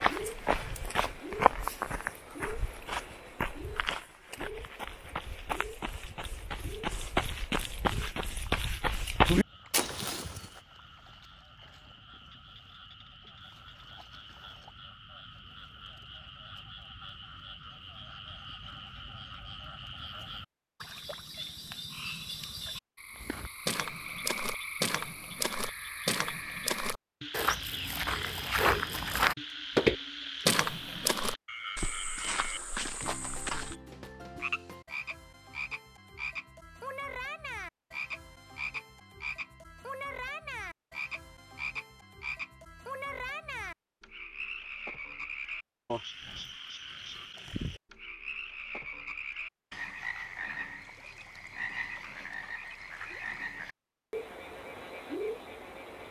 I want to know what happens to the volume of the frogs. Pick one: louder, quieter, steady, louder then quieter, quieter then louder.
louder.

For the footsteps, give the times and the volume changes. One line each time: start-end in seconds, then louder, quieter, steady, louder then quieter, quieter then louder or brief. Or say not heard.
0.0-10.4 quieter then louder
23.1-33.8 louder then quieter.